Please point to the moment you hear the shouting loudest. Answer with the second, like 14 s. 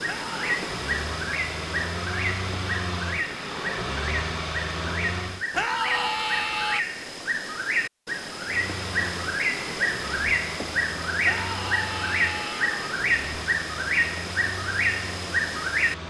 6 s.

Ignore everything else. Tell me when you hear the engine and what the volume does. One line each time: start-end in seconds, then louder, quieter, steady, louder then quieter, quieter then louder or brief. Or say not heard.
0.0-5.5 steady
8.4-16.0 steady.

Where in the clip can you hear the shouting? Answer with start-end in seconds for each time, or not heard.
0.1-0.6, 5.5-6.8, 11.2-12.8.